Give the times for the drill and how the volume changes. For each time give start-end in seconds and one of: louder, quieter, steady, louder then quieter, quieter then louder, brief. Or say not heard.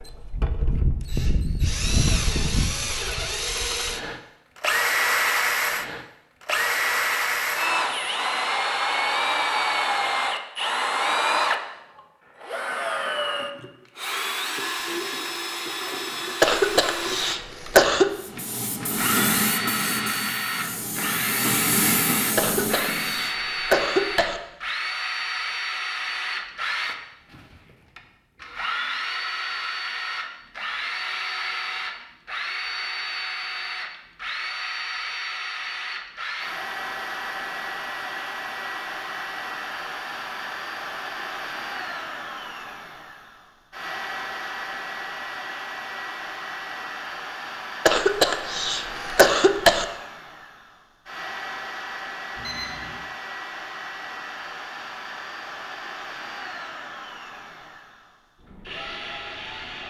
0.0-59.8 quieter.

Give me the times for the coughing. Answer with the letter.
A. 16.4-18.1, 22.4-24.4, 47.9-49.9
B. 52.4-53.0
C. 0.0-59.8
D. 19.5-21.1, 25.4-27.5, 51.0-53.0
A.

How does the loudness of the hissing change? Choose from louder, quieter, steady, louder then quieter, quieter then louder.
quieter then louder.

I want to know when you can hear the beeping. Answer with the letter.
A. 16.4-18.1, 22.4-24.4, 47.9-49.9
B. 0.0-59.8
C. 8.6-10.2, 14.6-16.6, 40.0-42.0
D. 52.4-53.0
D.